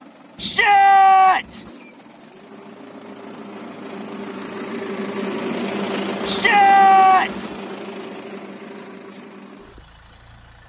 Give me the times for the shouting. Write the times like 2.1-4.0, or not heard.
0.3-1.6, 6.2-7.5.